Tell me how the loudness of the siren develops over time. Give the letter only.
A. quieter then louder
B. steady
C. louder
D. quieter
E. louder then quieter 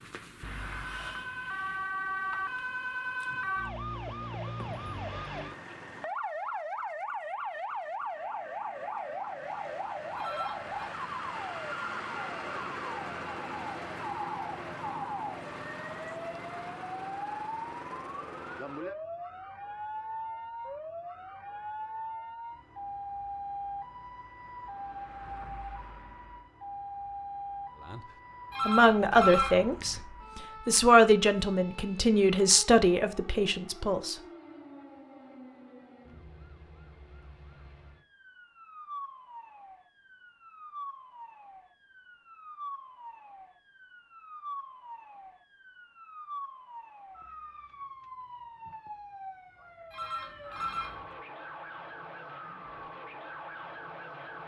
D.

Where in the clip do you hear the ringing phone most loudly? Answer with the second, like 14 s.
29 s.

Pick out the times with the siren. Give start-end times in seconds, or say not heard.
0.0-54.4.